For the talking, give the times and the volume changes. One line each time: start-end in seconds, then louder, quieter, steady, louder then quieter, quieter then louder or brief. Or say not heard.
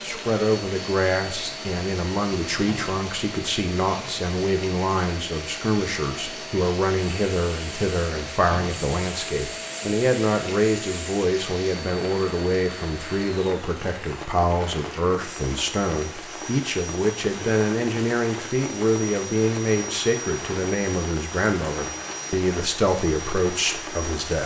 0.0-24.4 steady.